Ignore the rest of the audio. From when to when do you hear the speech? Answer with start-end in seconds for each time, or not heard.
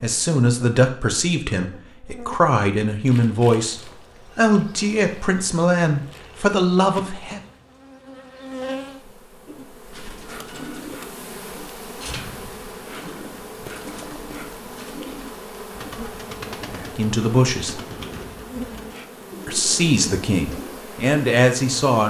0.0-7.4, 16.7-17.8, 19.4-22.0.